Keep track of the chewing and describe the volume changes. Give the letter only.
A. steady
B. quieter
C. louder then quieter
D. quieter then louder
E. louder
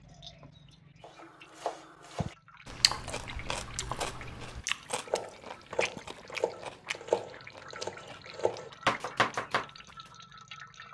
B.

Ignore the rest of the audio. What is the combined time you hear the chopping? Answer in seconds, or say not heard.
9 s.